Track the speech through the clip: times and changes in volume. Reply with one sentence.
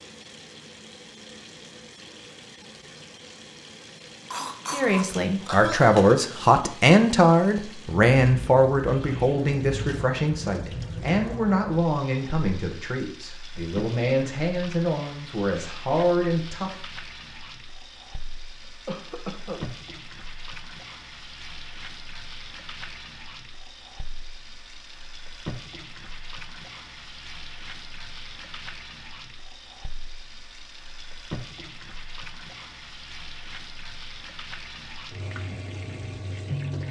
You can hear the speech from 4.7 to 16.8 s, getting quieter.